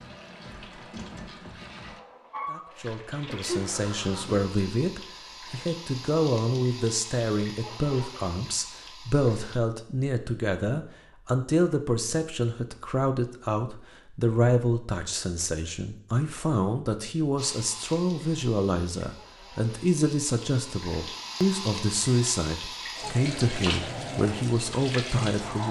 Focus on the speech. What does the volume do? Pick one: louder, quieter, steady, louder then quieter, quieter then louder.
steady.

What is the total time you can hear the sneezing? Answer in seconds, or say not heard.
2 s.